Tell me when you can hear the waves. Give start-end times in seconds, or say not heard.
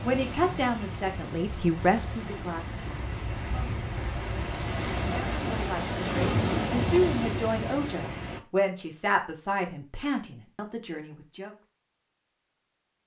0.0-8.4.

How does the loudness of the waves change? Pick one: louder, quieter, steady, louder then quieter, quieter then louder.
louder.